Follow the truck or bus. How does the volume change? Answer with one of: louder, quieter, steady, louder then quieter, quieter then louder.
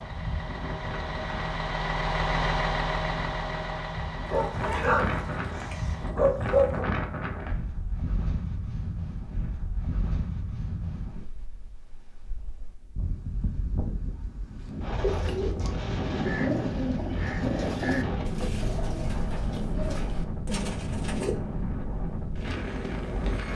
louder then quieter.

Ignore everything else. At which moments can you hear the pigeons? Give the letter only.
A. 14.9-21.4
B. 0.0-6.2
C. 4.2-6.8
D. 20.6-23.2
A.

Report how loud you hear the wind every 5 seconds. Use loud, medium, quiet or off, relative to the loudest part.
medium, loud, medium, loud, loud.